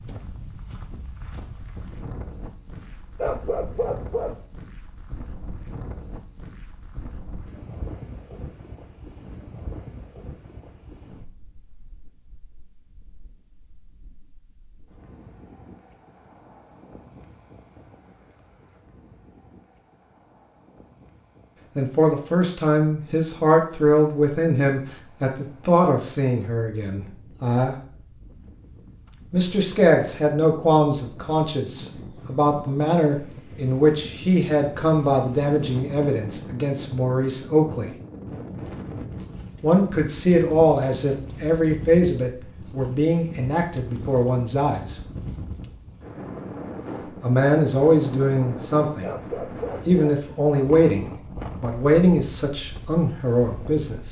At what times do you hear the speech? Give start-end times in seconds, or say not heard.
21.8-27.8, 29.3-38.0, 39.6-45.0, 47.2-49.1, 49.9-54.0.